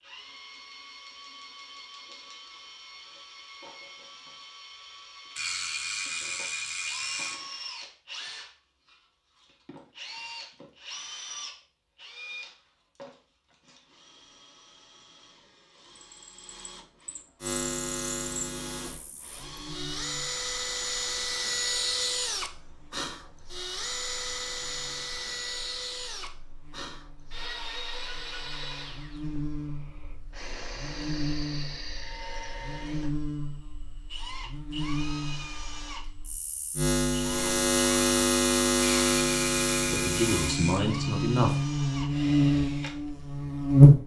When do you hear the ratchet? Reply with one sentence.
You can hear the ratchet from 5.3 to 7.3 s and from 38.8 to 40.8 s.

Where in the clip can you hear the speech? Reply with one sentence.
The speech can be heard from 39.9 to 41.6 s.